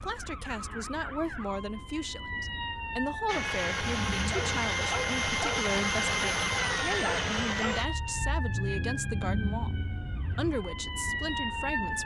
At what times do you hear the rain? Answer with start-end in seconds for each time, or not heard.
not heard.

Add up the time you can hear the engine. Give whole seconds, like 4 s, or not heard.
7 s.